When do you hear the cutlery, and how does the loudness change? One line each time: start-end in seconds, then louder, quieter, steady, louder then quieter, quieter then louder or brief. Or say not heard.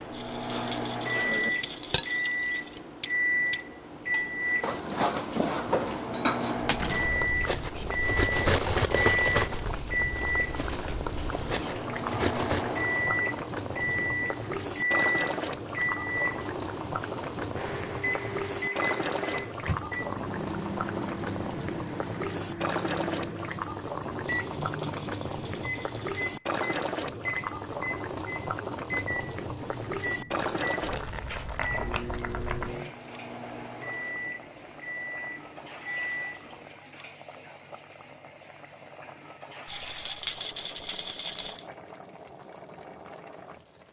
0.5-12.8 louder then quieter.